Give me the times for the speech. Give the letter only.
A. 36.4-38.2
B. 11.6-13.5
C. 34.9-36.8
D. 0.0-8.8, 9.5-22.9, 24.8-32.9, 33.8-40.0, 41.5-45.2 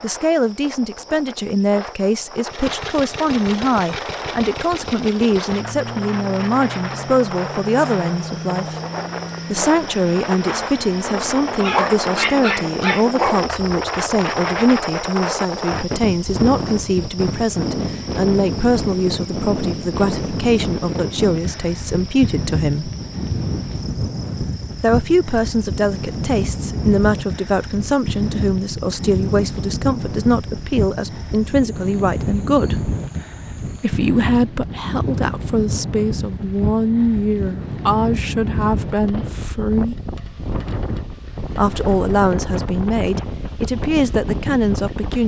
D.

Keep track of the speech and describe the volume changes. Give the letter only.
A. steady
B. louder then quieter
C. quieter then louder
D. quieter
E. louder
A.